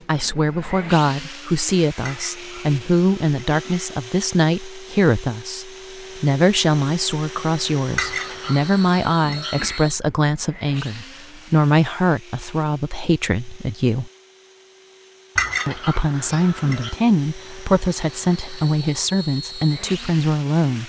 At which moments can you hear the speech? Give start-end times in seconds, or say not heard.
0.1-14.1, 15.7-20.8.